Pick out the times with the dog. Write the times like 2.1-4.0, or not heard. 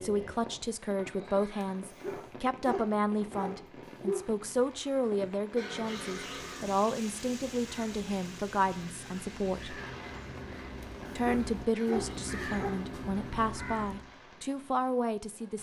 1.6-4.3, 10.8-12.9.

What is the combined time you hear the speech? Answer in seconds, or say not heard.
14 s.